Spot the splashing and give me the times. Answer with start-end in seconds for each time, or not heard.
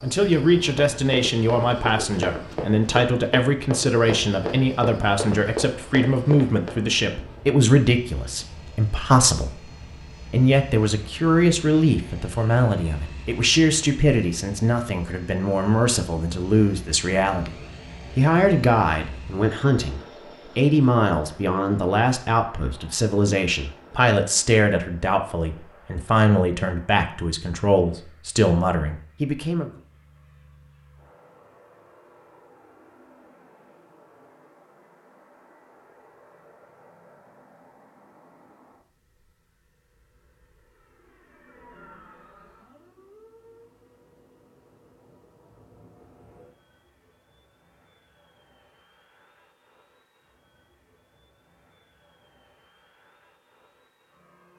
not heard.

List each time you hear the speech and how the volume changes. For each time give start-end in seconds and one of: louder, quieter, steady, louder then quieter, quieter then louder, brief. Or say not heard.
0.0-29.7 steady.